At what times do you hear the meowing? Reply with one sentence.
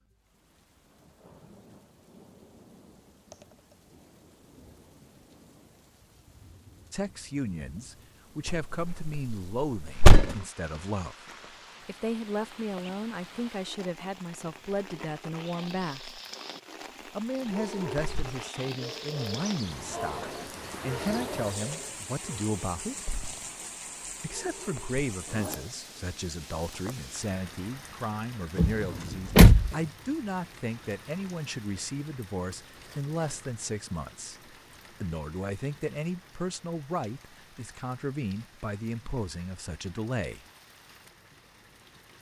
The meowing can't be heard in this clip.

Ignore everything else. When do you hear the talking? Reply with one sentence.
The talking can be heard from 6.9 to 16.2 s, from 17.1 to 23.1 s and from 24.2 to 40.5 s.